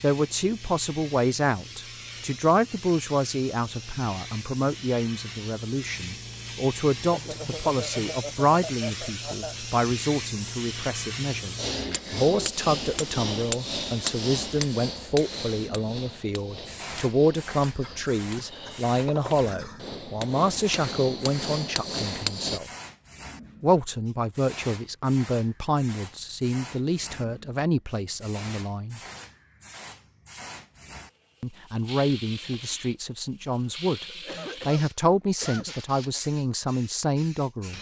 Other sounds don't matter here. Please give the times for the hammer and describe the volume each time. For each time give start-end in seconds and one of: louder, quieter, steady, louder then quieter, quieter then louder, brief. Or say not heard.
11.6-22.6 quieter then louder.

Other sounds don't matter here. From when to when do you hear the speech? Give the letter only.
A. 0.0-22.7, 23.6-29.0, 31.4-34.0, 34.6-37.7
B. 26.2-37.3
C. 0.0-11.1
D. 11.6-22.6
A.